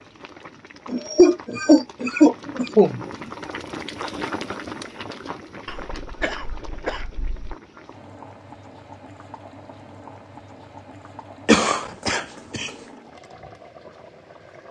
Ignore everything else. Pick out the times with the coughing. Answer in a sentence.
You can hear the coughing from 0.8 to 3.0 s, from 5.7 to 7.5 s and from 11.4 to 12.7 s.